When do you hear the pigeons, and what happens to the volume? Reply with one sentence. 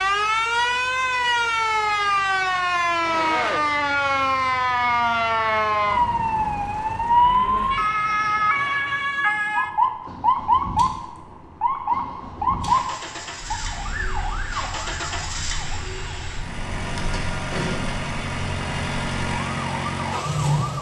The pigeons can't be heard in this clip.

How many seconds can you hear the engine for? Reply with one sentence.
You can hear the engine for 21 seconds altogether.